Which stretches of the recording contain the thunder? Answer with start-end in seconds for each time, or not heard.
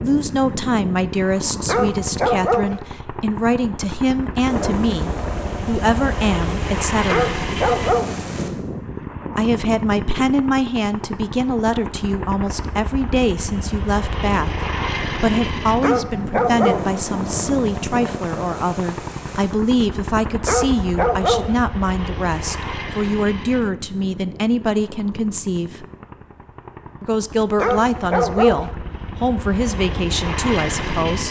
4.5-8.5, 16.6-19.6.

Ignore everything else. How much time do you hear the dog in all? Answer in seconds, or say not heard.
6 s.